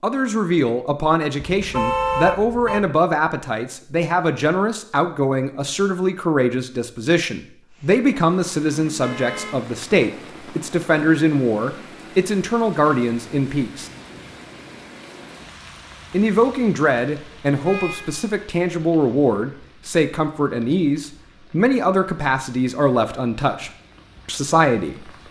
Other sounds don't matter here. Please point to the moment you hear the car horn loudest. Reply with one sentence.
The loudest moment of the car horn is at 2 seconds.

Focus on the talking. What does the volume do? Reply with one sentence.
The volume of the talking stays about the same.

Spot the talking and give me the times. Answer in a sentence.
You can hear the talking from 0.0 to 13.9 s and from 16.1 to 25.1 s.